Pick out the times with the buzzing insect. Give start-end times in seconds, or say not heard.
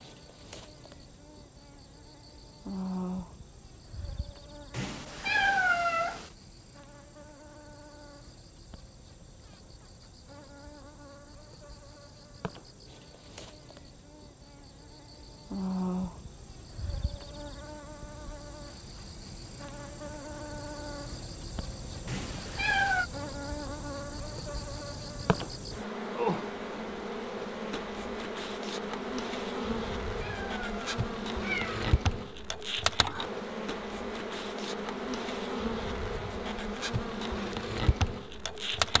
0.0-38.9.